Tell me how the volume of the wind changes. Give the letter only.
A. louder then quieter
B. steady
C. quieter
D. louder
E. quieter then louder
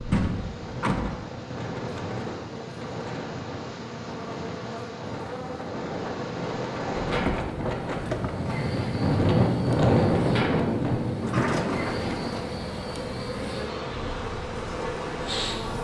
A.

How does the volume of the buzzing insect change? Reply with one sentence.
The volume of the buzzing insect goes up.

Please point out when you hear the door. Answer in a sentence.
The door can be heard from 0.1 to 1.1 s, from 7.0 to 8.3 s and from 11.2 to 12.6 s.